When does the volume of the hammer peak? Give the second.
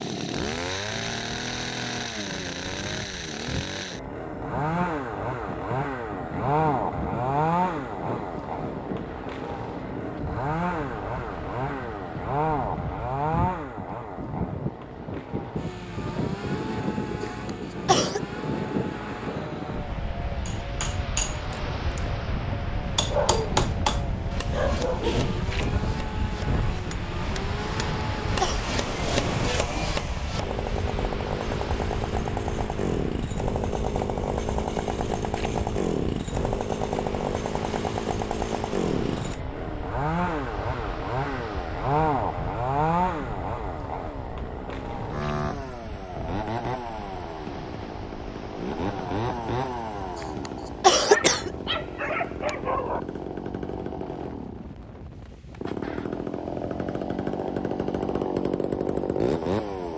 24 s.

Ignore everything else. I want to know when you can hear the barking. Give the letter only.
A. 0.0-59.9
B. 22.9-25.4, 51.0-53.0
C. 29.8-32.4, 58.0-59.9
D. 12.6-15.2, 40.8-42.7
B.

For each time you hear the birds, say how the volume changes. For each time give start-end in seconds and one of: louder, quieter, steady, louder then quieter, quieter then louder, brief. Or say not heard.
not heard.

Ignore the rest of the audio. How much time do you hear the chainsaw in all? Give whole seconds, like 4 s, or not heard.
60 s.